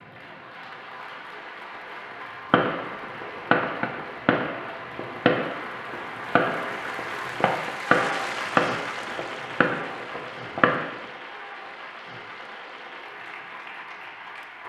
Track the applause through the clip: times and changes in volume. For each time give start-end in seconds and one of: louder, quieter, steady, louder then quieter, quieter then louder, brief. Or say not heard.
0.0-14.6 louder then quieter.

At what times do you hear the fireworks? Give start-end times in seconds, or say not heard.
2.5-11.1.